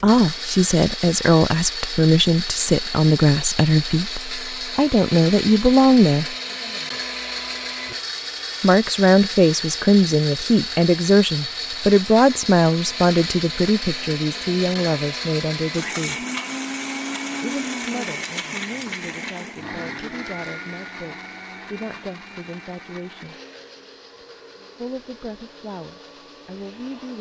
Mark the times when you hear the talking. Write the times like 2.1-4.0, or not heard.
0.0-6.3, 8.6-16.2, 17.4-23.4, 24.8-27.1.